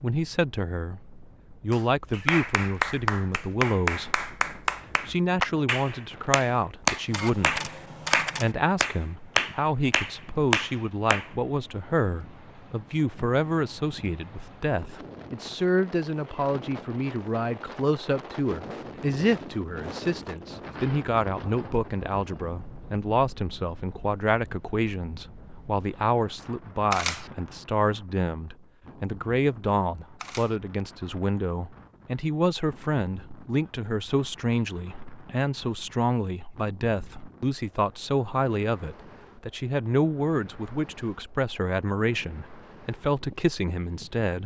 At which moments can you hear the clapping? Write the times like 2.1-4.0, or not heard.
1.7-11.3.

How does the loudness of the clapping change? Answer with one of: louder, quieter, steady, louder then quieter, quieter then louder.
steady.